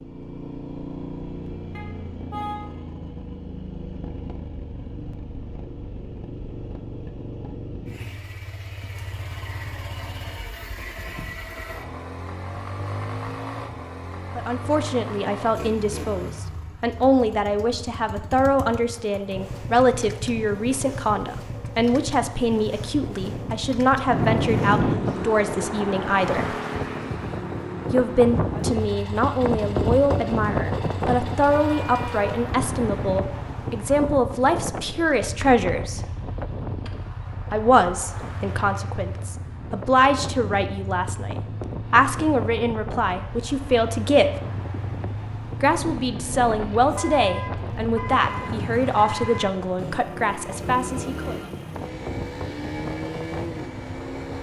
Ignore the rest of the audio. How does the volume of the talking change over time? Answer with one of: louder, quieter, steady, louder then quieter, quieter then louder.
steady.